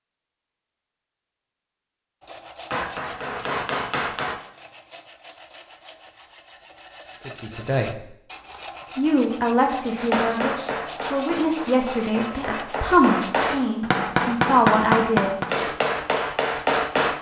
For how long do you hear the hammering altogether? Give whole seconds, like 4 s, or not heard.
9 s.